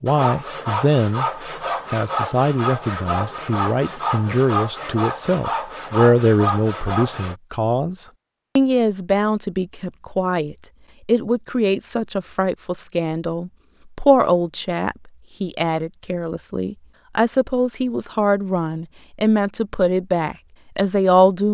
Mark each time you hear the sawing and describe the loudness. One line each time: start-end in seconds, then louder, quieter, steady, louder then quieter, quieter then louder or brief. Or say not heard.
0.1-7.3 steady.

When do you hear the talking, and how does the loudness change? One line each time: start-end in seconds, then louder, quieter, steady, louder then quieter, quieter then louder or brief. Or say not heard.
0.0-1.3 brief
1.9-21.5 steady.